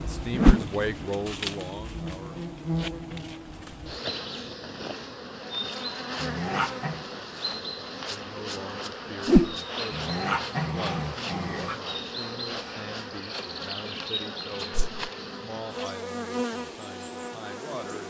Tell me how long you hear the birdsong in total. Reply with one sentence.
The birdsong can't be heard in this clip.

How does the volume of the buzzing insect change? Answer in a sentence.
The loudness of the buzzing insect stays about the same.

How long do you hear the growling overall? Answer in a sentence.
You can hear the growling for 3 seconds altogether.